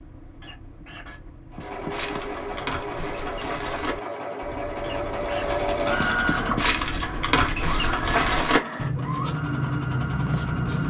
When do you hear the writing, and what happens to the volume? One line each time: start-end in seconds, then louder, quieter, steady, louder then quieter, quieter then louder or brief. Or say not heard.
0.0-10.8 louder.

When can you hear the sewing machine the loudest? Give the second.
6 s.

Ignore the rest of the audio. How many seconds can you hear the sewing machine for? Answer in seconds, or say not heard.
9 s.